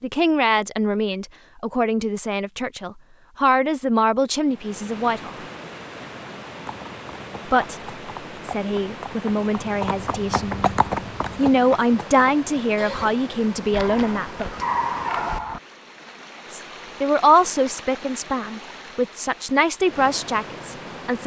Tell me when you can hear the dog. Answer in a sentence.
You can hear the dog from 13.7 to 15.6 s.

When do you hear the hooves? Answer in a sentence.
The hooves can be heard from 6.7 to 13.1 s.